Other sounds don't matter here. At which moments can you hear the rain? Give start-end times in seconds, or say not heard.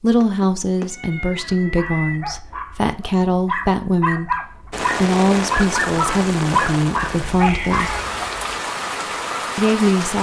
4.7-10.1.